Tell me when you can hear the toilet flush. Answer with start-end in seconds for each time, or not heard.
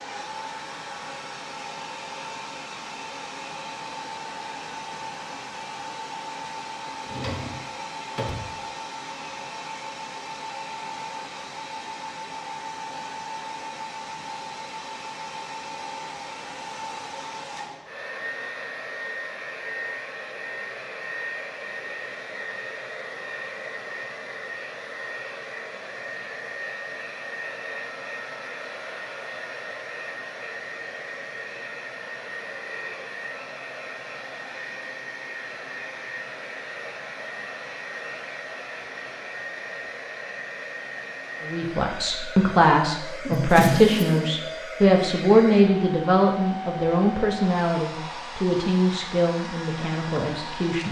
not heard.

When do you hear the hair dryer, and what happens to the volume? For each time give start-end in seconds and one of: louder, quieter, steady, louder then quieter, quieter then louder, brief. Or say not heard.
0.0-50.8 steady.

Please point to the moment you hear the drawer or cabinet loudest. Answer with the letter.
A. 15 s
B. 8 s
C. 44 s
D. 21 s
C.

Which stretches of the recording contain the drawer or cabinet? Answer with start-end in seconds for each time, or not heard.
7.0-8.6, 43.2-44.3.